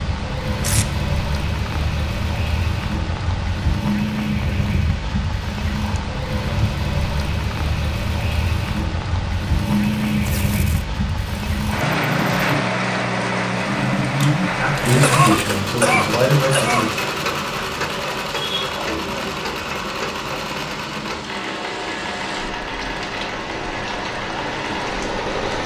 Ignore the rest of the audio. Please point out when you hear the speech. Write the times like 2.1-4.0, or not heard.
14.4-17.0.